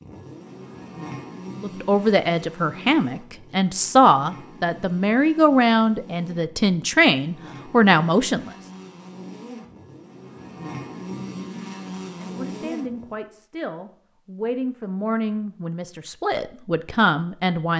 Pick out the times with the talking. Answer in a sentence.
The talking can be heard from 1.6 to 8.5 s and from 12.2 to 17.7 s.